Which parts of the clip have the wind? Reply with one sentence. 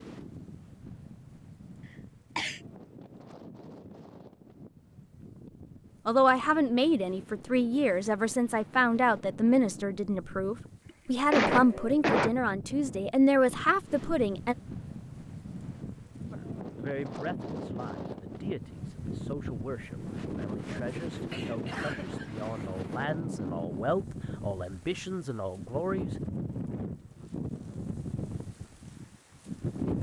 You can hear the wind from 0.0 to 29.9 s.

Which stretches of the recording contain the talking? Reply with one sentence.
The talking can be heard from 6.0 to 14.6 s and from 16.2 to 26.2 s.